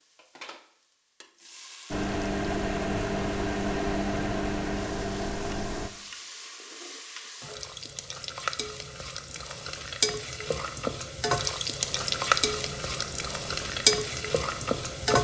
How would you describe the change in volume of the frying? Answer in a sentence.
The loudness of the frying goes up.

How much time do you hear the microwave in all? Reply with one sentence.
The microwave can be heard for 7 seconds in total.